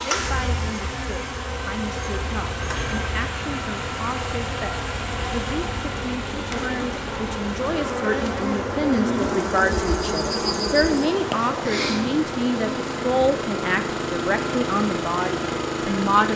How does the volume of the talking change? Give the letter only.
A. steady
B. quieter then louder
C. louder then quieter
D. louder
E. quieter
D.